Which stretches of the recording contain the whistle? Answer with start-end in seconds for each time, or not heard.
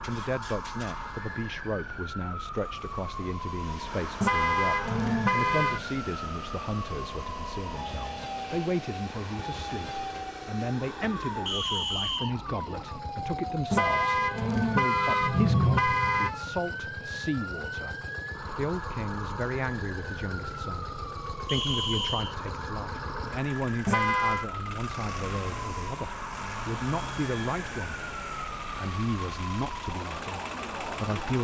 11.4-12.3, 21.4-22.4.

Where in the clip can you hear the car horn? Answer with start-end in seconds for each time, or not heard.
4.2-5.8, 13.7-16.3, 23.9-24.4.